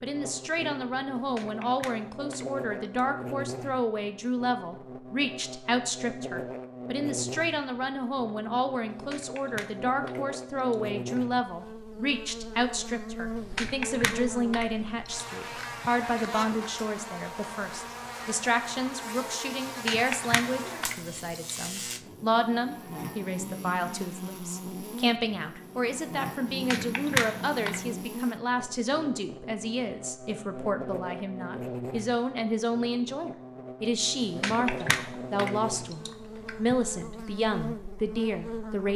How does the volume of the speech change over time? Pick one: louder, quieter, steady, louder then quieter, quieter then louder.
steady.